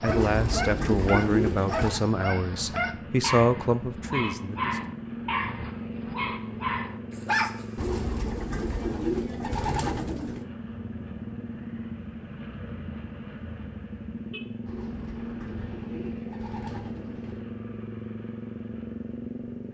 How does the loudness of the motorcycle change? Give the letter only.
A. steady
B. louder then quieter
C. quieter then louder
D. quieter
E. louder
A.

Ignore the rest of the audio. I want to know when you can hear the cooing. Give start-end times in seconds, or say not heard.
0.1-2.0, 7.8-10.4, 14.7-17.4.